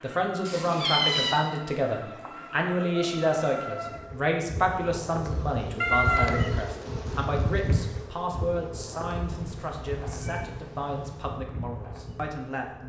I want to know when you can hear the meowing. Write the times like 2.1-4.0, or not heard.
0.5-1.4, 5.8-6.5, 9.3-11.3.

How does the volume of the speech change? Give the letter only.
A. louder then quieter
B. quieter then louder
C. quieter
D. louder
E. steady
C.